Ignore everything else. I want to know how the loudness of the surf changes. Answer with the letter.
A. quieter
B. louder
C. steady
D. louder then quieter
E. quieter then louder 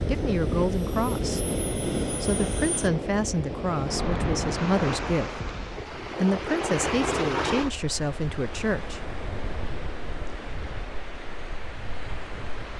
A.